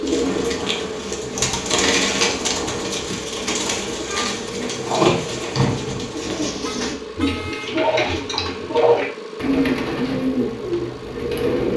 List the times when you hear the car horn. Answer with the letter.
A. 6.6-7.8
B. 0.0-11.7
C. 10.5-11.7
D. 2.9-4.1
A.